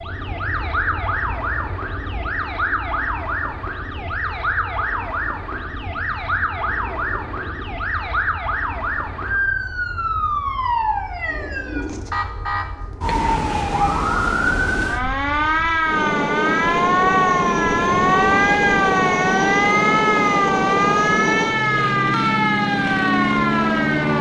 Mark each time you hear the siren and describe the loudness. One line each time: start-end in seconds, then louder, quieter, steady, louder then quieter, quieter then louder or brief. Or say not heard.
0.0-24.1 louder.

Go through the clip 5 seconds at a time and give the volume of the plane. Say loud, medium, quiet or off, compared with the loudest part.
quiet, quiet, quiet, loud, loud.